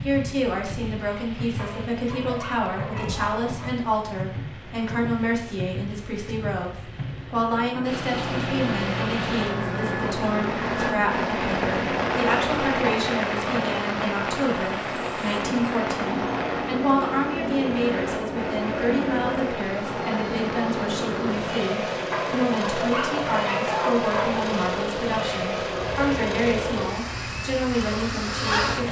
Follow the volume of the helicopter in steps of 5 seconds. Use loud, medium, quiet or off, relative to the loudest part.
off, loud, loud, loud, loud, loud.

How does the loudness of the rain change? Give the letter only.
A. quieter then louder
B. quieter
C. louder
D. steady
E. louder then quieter
E.